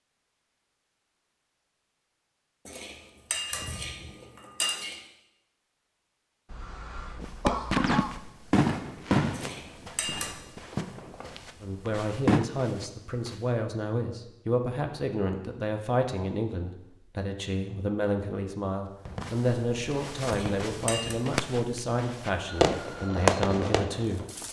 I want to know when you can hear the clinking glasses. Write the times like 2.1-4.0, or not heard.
2.6-5.0, 9.3-10.3, 20.2-21.1.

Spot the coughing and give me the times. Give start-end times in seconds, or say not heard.
6.5-8.2.